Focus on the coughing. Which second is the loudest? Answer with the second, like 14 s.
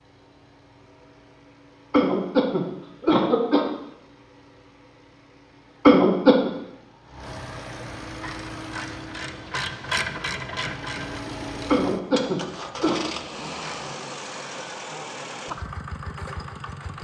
6 s.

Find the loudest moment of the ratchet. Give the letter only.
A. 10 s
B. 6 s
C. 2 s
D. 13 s
A.